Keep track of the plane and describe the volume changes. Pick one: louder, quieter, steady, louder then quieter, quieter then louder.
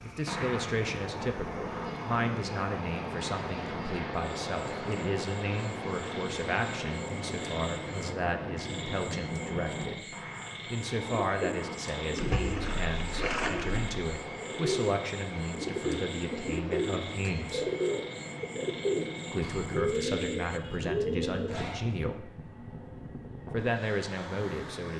quieter.